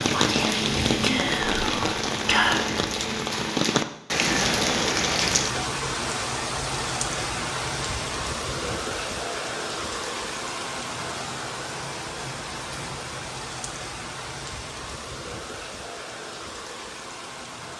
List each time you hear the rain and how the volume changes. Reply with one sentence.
You can hear the rain from 0.0 to 17.7 s, getting quieter.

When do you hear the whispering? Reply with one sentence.
You can hear the whispering from 0.1 to 2.8 s.